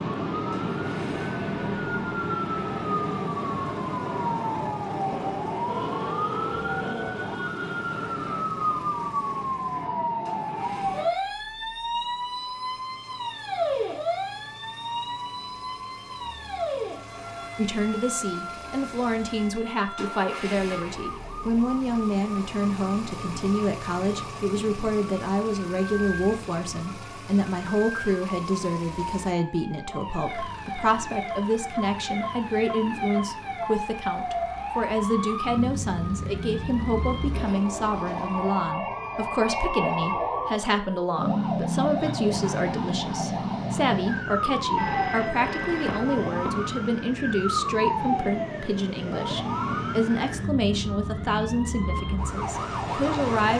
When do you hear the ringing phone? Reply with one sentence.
You can hear the ringing phone from 5.7 to 7.2 s and from 44.8 to 46.6 s.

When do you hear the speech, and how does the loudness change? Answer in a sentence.
The speech can be heard from 17.6 to 53.5 s, at a steady volume.